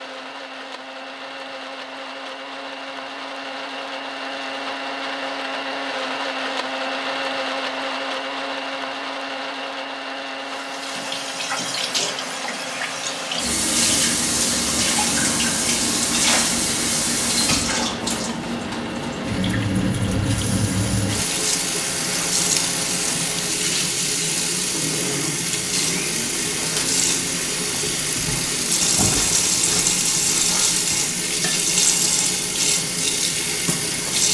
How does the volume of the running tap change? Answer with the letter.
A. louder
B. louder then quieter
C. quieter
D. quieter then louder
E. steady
E.